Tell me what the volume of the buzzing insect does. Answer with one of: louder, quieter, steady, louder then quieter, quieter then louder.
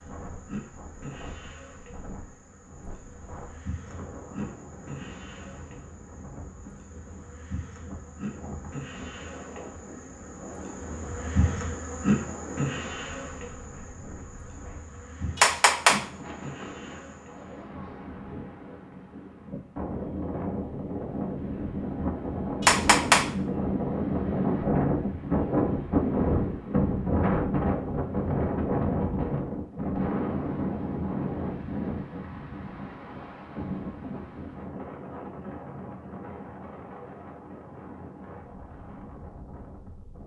louder then quieter.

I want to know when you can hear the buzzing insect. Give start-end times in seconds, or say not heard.
0.0-17.5.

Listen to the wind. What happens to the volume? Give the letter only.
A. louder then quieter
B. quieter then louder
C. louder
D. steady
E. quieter
A.